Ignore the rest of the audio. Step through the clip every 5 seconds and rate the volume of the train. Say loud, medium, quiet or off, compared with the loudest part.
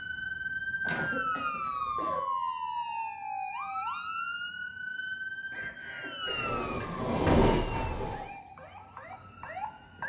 off, loud.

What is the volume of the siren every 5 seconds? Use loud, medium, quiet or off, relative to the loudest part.
loud, medium.